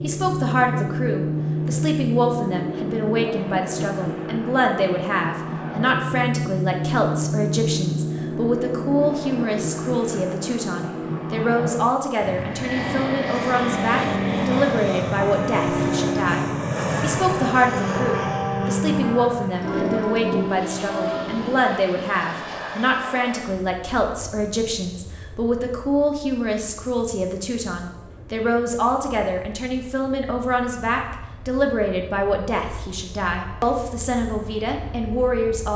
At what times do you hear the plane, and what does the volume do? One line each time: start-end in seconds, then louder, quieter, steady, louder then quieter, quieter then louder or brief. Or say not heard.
0.0-35.7 quieter.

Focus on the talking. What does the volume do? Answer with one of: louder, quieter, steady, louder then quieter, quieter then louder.
steady.